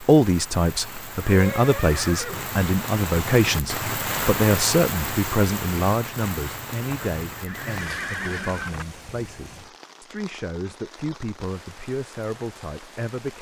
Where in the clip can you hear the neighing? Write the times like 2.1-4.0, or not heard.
1.2-2.5, 6.8-8.8.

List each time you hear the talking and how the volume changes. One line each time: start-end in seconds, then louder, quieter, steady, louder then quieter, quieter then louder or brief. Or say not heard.
0.0-13.3 quieter.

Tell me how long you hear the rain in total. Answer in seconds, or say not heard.
13 s.